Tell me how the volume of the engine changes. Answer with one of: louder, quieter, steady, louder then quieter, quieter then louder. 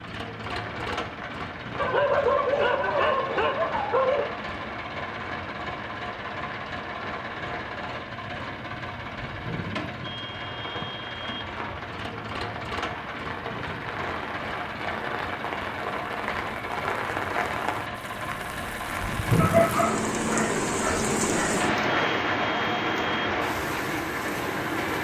steady.